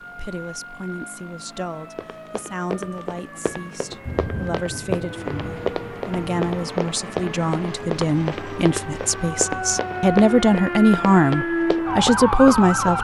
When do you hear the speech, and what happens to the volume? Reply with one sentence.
The speech can be heard from 0.0 to 13.0 s, getting louder.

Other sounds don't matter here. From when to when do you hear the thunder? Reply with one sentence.
The thunder can be heard from 4.0 to 6.5 s.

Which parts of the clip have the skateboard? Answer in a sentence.
You can't hear the skateboard here.